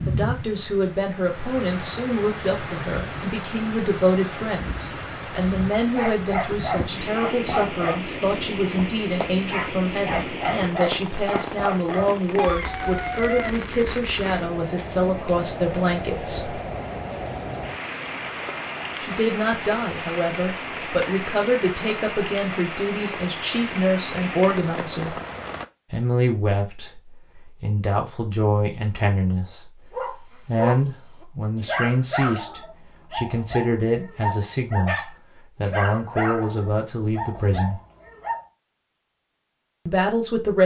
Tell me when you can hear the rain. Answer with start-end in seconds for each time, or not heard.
0.0-25.6.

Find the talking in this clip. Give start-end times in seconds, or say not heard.
0.1-16.6, 19.0-25.1, 25.9-37.8, 39.9-40.6.